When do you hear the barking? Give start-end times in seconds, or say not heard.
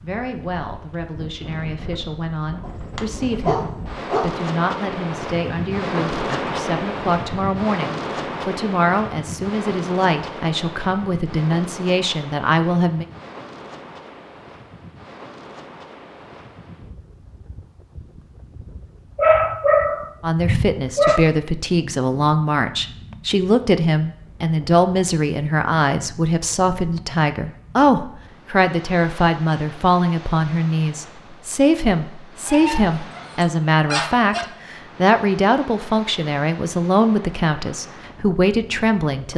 2.6-4.3, 19.1-21.2, 32.5-34.5.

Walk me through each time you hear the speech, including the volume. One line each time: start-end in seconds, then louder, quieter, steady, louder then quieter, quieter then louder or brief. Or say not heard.
0.0-13.1 louder
20.2-39.3 steady.